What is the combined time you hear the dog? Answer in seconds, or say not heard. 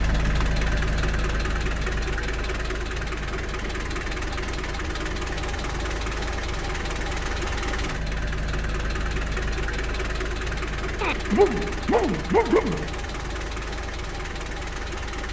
2 s.